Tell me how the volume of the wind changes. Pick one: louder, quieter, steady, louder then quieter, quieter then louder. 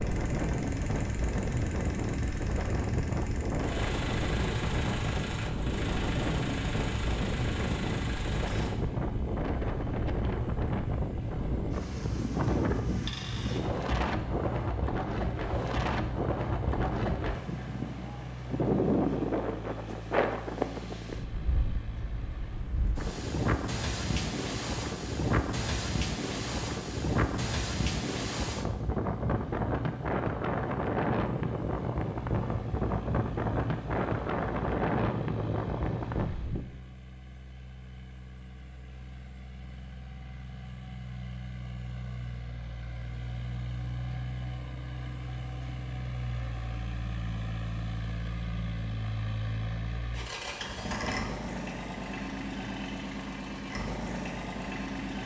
steady.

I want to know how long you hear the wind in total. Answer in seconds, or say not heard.
37 s.